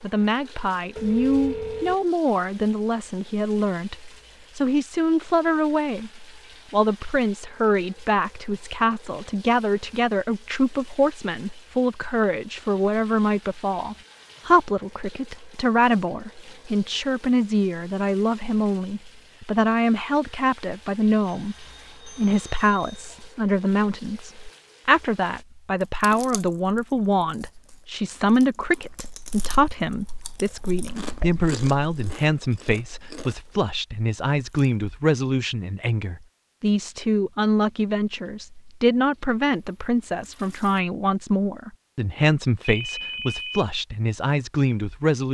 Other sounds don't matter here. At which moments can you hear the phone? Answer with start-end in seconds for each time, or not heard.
0.9-1.9, 21.2-23.3, 42.6-43.6.